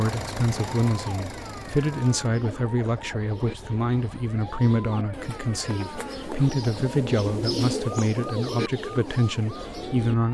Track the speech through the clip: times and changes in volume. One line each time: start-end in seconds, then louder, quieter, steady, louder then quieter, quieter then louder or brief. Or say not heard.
0.0-10.2 steady.